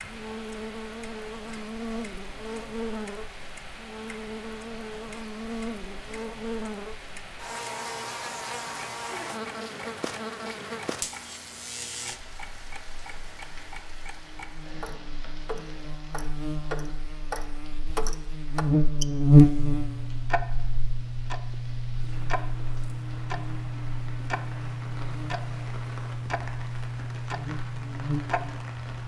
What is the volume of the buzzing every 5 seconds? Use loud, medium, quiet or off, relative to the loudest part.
quiet, quiet, quiet, loud, quiet, quiet.